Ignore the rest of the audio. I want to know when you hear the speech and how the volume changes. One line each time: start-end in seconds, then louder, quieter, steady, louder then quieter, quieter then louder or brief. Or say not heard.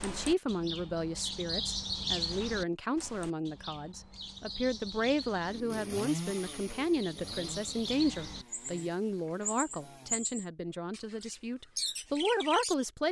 0.0-13.0 steady.